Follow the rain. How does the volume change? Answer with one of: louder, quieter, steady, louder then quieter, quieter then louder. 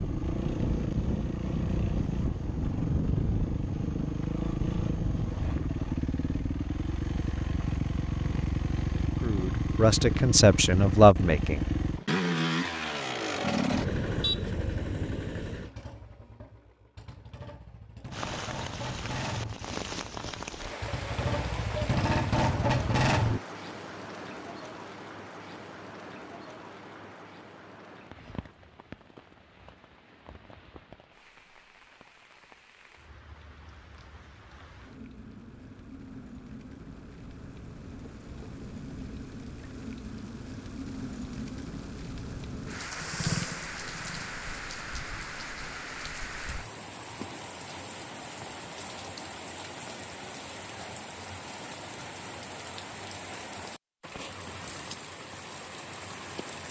quieter then louder.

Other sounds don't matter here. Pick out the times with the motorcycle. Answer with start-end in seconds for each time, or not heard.
0.0-23.4, 42.8-44.4.